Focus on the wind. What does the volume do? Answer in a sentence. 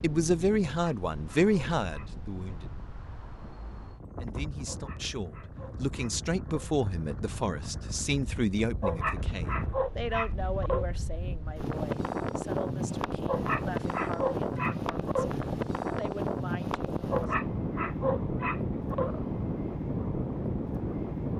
The loudness of the wind goes up.